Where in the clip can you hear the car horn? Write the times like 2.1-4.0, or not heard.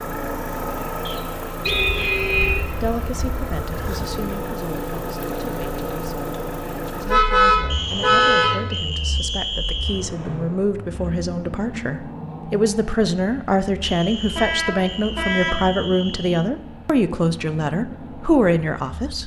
1.6-3.4, 7.0-8.6, 14.3-15.7.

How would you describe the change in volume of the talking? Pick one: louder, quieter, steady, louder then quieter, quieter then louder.
louder.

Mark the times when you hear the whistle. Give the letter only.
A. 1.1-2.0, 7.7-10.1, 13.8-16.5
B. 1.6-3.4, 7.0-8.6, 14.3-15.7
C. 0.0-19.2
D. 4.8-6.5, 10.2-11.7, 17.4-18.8
A.